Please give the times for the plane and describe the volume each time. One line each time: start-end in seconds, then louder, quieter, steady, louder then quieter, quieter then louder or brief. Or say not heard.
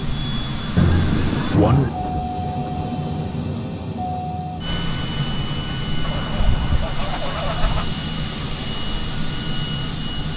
0.0-10.3 steady.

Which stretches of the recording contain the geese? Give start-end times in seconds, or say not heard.
0.8-1.9, 6.0-7.8.